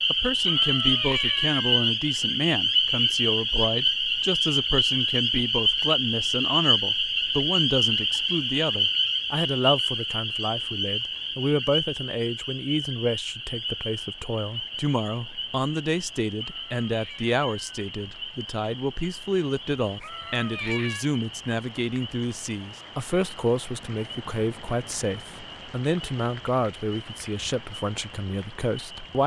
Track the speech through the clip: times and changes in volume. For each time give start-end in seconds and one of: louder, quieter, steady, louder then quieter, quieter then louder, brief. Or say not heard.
0.1-29.2 steady.